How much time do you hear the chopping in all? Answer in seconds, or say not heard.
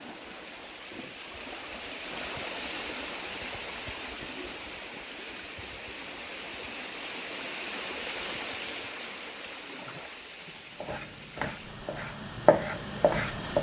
3 s.